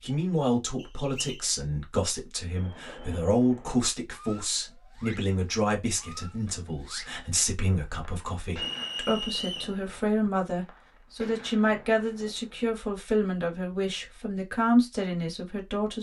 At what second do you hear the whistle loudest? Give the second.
9 s.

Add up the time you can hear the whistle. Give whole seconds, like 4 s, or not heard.
2 s.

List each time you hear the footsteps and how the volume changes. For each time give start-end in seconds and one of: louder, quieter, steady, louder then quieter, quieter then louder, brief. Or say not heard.
not heard.